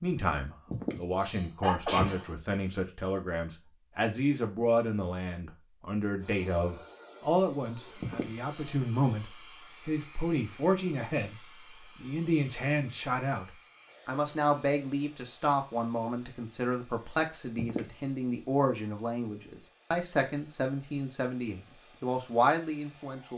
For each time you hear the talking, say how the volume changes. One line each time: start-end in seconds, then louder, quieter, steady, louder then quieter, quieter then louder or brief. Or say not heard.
0.0-11.3 steady
11.9-23.3 steady.